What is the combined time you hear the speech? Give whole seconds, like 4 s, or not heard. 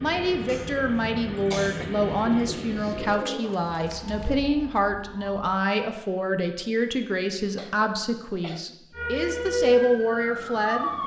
11 s.